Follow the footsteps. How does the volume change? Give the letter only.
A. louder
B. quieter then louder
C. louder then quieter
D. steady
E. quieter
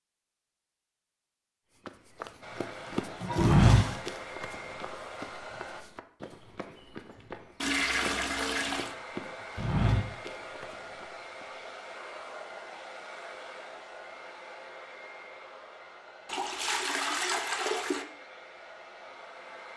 B.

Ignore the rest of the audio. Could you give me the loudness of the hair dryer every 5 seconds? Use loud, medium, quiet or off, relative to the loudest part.
loud, loud, loud, medium.